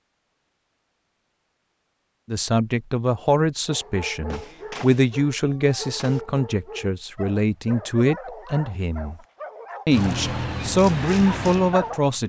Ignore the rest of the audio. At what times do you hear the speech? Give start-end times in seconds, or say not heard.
2.3-9.2, 9.8-12.2.